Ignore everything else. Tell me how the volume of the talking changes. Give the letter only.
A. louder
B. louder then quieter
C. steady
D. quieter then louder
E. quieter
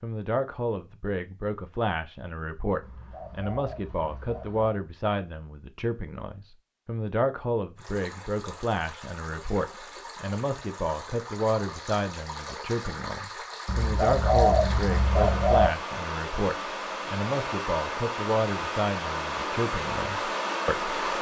C.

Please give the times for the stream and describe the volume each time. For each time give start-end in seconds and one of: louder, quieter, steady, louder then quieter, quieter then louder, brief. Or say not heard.
7.8-21.1 louder.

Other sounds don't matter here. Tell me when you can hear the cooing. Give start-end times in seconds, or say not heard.
2.8-4.8, 13.7-15.7.